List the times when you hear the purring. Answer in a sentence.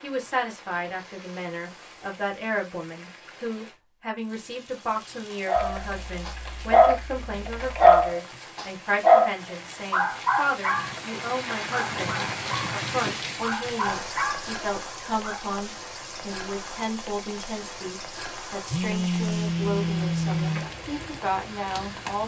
You can't hear the purring here.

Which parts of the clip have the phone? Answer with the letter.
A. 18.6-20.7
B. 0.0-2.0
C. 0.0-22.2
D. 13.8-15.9
A.